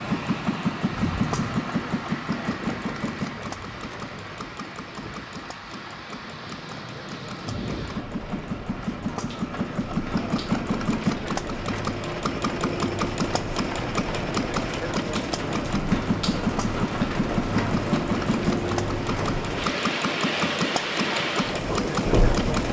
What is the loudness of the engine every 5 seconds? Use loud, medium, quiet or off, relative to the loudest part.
loud, medium, loud, loud, loud.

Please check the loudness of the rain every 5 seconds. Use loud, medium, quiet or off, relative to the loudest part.
medium, medium, medium, loud, loud.